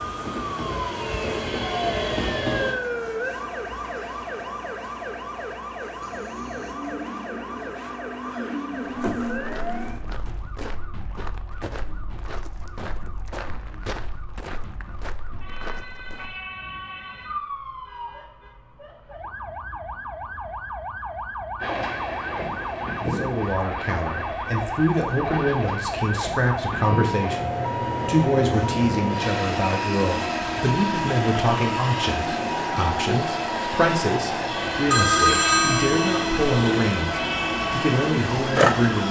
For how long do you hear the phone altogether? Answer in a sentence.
You can hear the phone for 2 seconds altogether.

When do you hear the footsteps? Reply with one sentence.
The footsteps can be heard from 8.9 to 16.4 s.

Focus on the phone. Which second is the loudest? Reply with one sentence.
The volume of the phone peaks at 35 seconds.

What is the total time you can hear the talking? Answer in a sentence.
You can hear the talking for 16 seconds altogether.